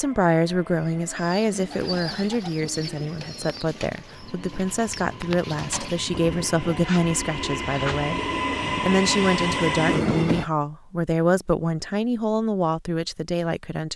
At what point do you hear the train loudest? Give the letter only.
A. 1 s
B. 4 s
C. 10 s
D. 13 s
C.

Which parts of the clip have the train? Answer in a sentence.
You can hear the train from 0.0 to 10.4 s.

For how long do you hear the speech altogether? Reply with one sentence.
You can hear the speech for 14 seconds altogether.